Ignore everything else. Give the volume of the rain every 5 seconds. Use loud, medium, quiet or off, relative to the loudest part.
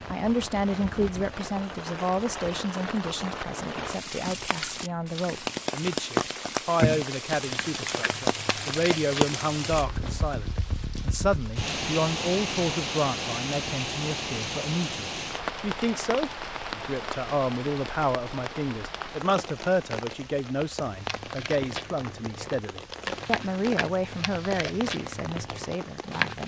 medium, loud, loud, medium, medium, medium.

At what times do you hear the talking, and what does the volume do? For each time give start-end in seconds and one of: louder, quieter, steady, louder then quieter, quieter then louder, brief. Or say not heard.
0.1-26.4 steady.